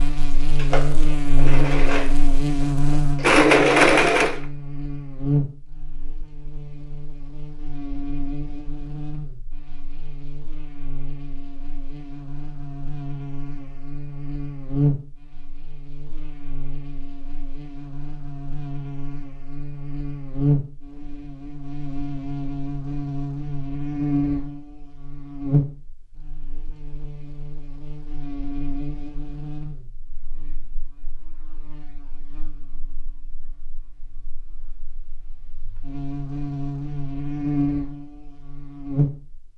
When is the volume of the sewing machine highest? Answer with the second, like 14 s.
4 s.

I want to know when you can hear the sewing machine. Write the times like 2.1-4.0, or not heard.
0.0-4.4.